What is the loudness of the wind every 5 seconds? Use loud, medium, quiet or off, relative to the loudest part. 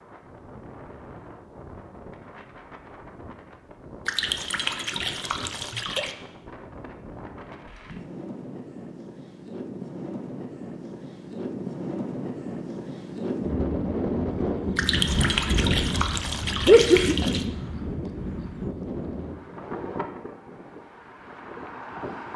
quiet, medium, loud, loud, medium.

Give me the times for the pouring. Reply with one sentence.
You can hear the pouring from 4.0 to 6.2 s and from 14.8 to 17.4 s.